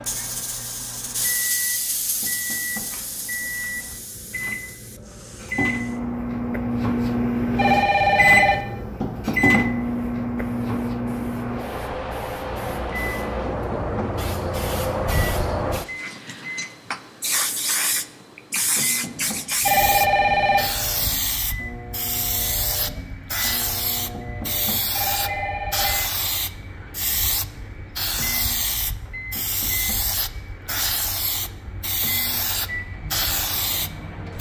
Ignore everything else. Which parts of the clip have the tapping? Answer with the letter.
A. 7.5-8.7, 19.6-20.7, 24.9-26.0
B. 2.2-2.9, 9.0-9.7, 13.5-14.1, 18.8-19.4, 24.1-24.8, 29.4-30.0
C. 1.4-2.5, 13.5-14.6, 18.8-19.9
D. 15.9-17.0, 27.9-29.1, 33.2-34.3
B.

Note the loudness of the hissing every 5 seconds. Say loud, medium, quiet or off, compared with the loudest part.
medium, quiet, loud, loud, loud, loud, loud.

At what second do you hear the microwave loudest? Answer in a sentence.
The volume of the microwave peaks at 8 seconds.